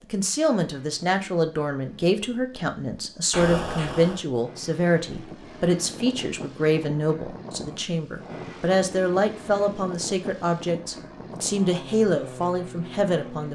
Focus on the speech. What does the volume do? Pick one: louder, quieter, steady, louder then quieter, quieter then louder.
steady.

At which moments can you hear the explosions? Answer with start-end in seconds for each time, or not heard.
3.3-4.2.